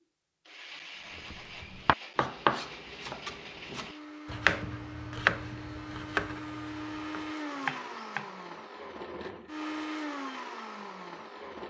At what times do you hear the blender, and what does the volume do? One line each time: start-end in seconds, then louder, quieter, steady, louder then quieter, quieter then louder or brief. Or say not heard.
0.0-11.6 louder.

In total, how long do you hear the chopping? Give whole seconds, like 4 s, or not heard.
7 s.